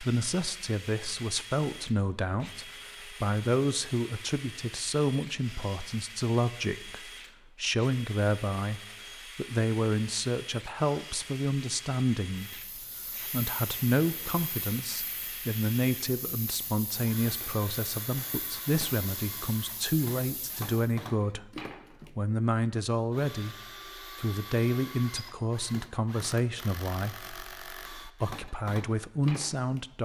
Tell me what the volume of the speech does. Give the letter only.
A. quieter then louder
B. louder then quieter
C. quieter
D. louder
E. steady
E.